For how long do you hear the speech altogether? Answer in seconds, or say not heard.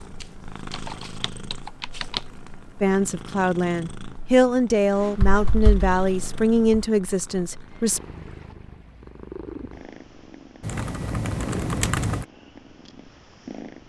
5 s.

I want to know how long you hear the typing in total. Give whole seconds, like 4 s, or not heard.
5 s.